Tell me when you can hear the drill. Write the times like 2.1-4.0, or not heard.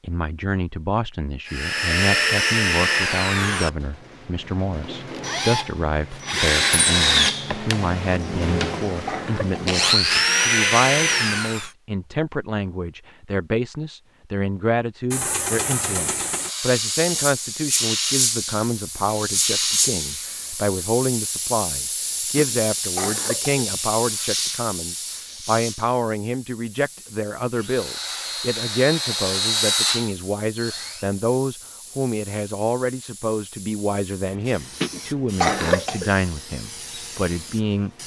1.4-11.7, 27.6-31.1.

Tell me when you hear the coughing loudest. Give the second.
36 s.